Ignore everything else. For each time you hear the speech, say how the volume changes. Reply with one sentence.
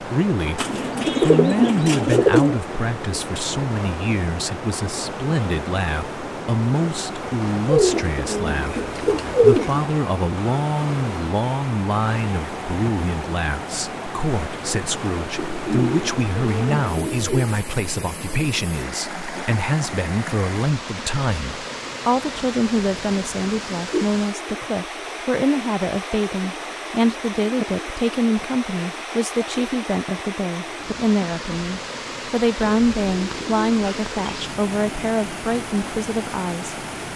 The speech can be heard from 0.0 to 36.8 s, at a steady volume.